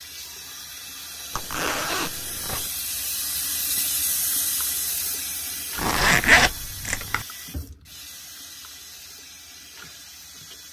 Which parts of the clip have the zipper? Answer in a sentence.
You can hear the zipper from 1.3 to 2.7 s and from 5.8 to 7.2 s.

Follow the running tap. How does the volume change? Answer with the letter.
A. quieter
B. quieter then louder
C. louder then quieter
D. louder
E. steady
C.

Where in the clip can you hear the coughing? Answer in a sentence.
The coughing can't be heard in this clip.